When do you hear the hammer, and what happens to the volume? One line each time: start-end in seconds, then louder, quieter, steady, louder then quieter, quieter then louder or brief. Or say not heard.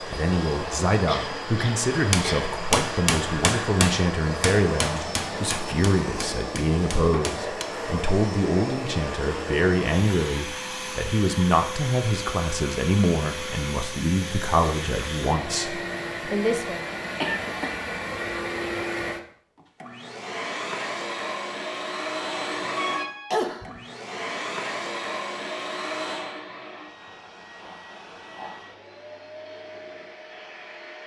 1.9-7.7 quieter.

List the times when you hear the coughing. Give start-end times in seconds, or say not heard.
1.1-2.6, 16.9-18.2, 22.8-23.8.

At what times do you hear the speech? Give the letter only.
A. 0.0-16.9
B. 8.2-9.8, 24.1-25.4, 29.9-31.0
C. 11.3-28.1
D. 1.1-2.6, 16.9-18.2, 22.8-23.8
A.